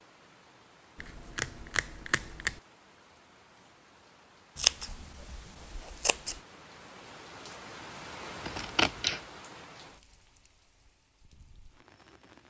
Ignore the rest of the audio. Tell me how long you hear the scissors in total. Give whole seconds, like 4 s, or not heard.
4 s.